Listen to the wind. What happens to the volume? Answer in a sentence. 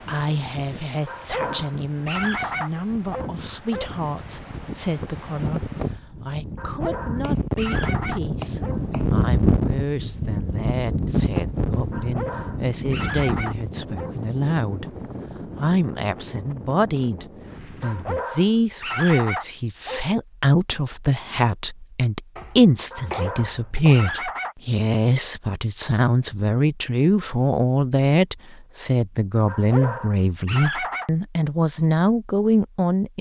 The volume of the wind goes up, then down.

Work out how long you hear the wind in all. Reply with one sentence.
You can hear the wind for 18 seconds altogether.